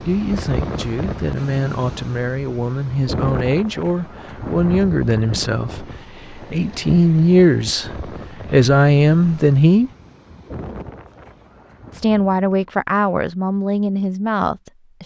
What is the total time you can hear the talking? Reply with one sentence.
You can hear the talking for 13 seconds altogether.